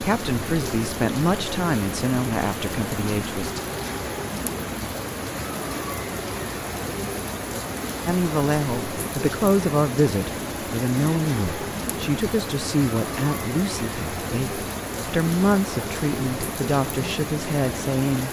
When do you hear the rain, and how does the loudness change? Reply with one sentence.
You can hear the rain from 0.0 to 18.2 s, at a steady volume.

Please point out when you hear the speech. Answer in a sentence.
You can hear the speech from 0.0 to 3.6 s and from 8.1 to 18.2 s.